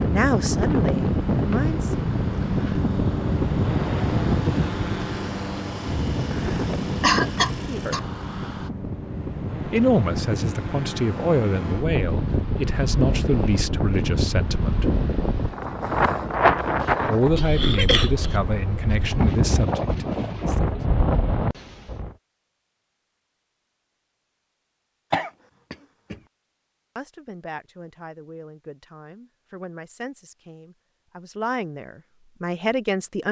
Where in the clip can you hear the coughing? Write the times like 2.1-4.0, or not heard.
7.0-8.0, 16.8-18.4, 25.1-26.1.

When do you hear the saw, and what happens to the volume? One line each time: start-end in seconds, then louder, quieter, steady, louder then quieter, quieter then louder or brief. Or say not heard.
not heard.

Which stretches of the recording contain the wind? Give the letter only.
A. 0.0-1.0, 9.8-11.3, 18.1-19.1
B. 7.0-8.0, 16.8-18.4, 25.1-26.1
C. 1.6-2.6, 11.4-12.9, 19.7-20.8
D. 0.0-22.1
D.